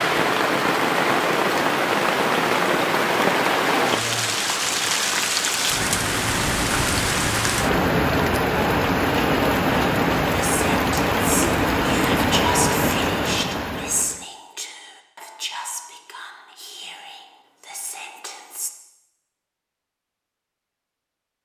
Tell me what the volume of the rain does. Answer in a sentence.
The loudness of the rain stays about the same.